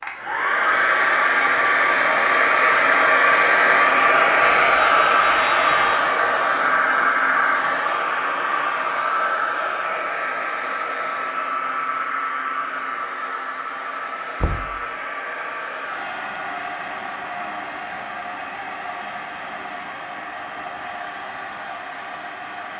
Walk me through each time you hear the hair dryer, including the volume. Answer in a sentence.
You can hear the hair dryer from 0.0 to 22.7 s, getting quieter.